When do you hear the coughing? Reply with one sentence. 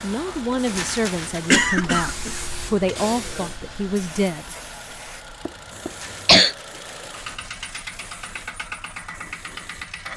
The coughing can be heard from 1.5 to 2.5 s and from 5.5 to 6.5 s.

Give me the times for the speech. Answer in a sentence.
The speech can be heard from 0.0 to 4.5 s.